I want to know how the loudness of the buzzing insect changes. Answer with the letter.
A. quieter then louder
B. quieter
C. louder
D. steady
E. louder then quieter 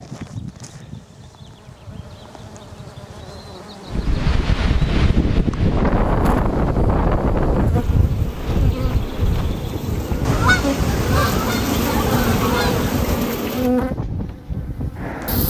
C.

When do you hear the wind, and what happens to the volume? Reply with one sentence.
You can hear the wind from 3.9 to 15.4 s, getting quieter.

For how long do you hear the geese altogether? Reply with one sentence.
You can hear the geese for 3 seconds altogether.